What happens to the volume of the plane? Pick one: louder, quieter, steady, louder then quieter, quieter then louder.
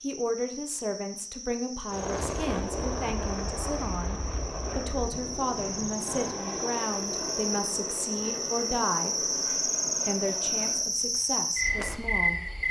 quieter.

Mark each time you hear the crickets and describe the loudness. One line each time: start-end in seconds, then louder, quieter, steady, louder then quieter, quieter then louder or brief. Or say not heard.
0.0-12.6 louder.